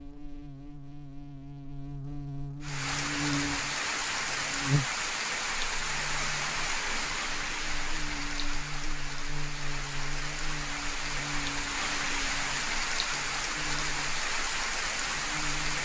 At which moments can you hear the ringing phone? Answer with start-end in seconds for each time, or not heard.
not heard.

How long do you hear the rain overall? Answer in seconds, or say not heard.
13 s.